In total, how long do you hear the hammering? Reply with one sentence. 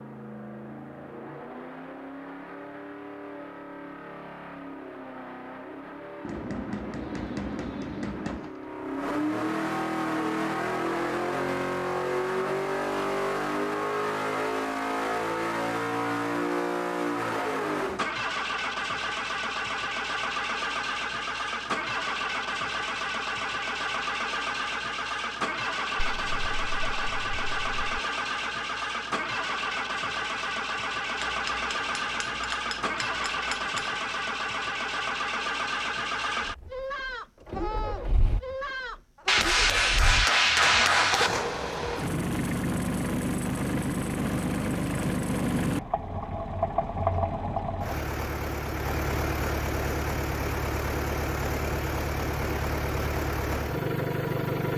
The hammering can be heard for 7 seconds in total.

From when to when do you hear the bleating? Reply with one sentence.
You can hear the bleating from 7.0 to 8.8 s, from 25.9 to 28.0 s and from 36.6 to 39.5 s.